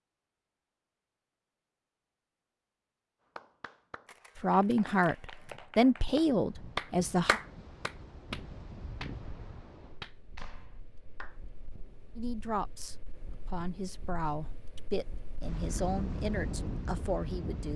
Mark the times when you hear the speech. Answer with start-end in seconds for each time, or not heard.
4.3-7.4, 12.2-17.7.